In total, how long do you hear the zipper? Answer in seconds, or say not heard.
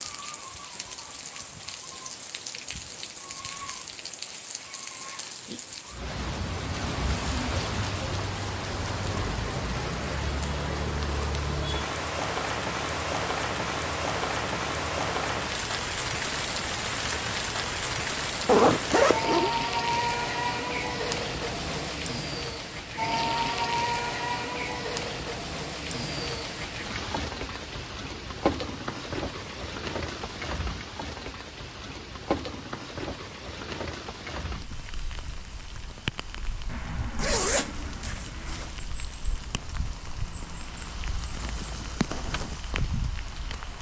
3 s.